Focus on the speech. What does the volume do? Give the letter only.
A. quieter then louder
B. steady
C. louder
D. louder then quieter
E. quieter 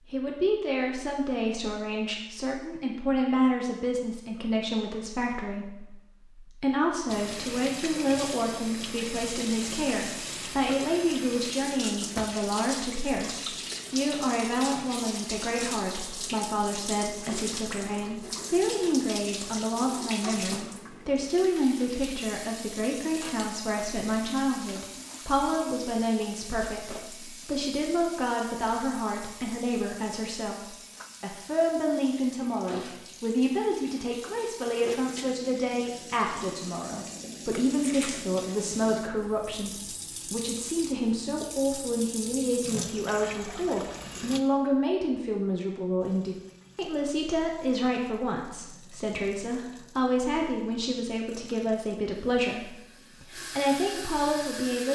B.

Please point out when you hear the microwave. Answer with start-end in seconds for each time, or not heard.
not heard.